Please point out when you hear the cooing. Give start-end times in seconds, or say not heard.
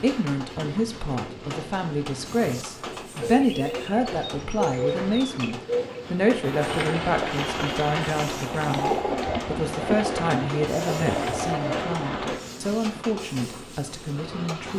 3.2-12.4.